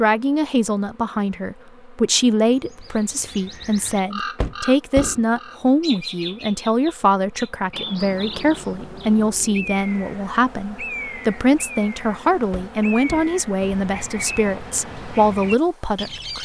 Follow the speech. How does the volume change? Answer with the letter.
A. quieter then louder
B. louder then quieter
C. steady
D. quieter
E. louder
C.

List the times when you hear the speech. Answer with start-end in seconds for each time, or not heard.
0.0-16.3.